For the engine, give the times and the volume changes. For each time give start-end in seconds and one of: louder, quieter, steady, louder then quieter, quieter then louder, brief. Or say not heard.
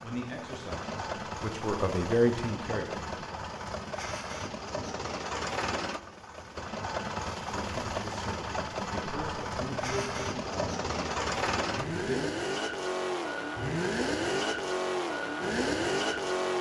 0.0-16.5 louder.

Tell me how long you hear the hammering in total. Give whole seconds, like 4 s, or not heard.
not heard.